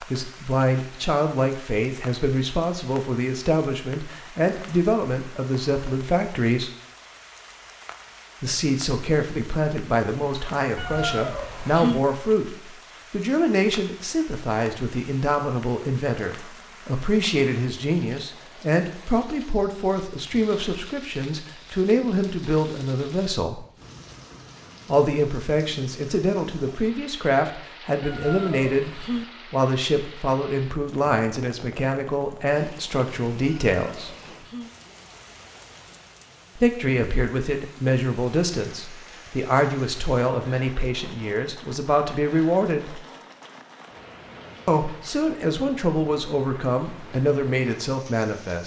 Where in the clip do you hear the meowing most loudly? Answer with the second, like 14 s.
12 s.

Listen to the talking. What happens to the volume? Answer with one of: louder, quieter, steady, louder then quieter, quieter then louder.
steady.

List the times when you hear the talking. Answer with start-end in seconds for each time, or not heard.
0.0-6.7, 8.4-23.6, 24.9-34.1, 36.5-43.0, 44.6-48.6.